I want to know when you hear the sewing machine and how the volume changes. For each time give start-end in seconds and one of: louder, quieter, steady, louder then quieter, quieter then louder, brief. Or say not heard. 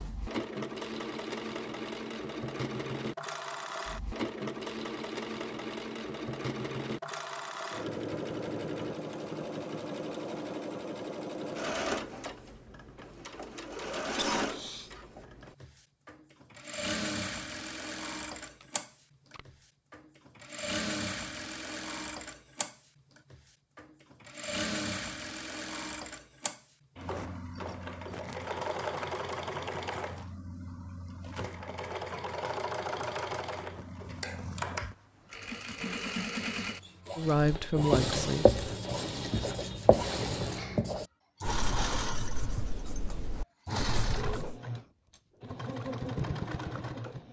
0.0-47.2 steady.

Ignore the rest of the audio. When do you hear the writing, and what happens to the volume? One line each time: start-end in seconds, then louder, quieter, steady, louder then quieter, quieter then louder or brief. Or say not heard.
37.4-44.5 quieter.